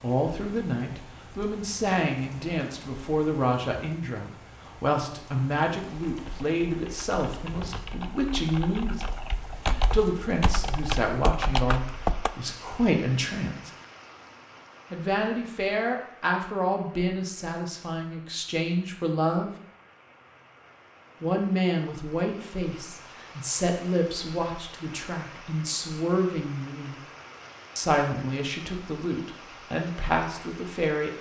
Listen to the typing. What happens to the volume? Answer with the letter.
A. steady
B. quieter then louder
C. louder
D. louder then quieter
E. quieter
C.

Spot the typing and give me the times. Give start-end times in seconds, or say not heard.
5.9-12.3.